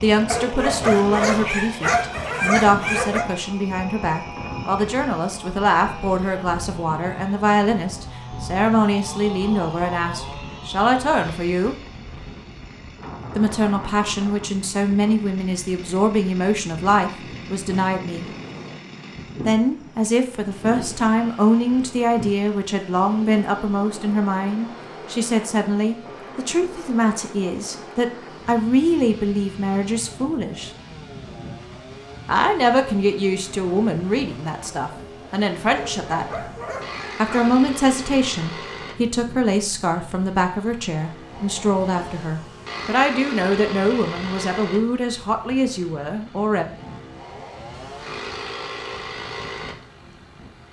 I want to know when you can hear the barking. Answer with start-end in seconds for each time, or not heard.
0.3-3.2, 35.8-37.6.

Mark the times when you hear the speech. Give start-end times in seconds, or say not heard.
0.0-11.8, 13.3-18.2, 19.4-30.7, 32.2-36.4, 37.1-46.6.